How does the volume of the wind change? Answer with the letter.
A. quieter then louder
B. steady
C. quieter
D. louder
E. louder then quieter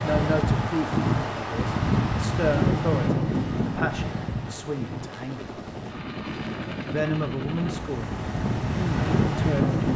A.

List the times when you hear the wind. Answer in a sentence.
The wind can be heard from 0.0 to 9.9 s.